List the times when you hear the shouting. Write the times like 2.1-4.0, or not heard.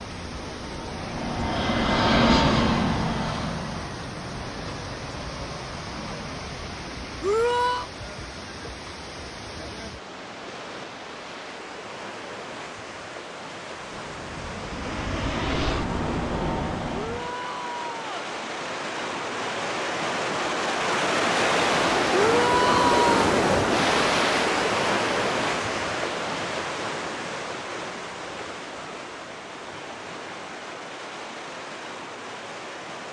7.2-7.9, 16.9-18.3, 22.1-23.2.